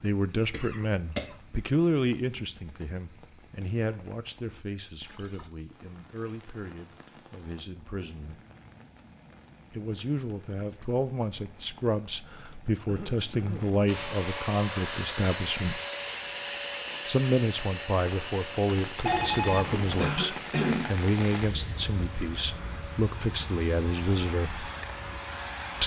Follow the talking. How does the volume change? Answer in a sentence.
The loudness of the talking goes down, then up.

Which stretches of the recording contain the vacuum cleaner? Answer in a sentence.
The vacuum cleaner can be heard from 13.8 to 25.8 s.